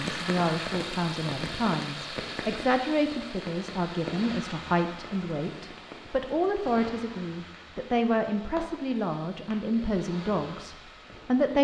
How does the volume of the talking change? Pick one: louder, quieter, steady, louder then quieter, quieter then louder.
steady.